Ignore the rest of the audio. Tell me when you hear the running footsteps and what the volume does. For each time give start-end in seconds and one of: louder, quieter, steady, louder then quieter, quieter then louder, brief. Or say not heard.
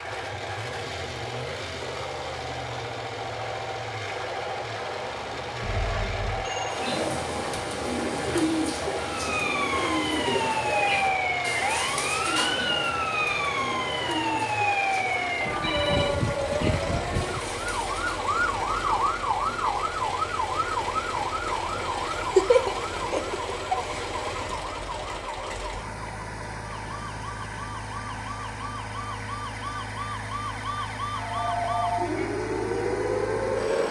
not heard.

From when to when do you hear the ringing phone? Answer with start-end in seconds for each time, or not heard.
5.6-6.8, 15.6-16.1, 31.1-32.0.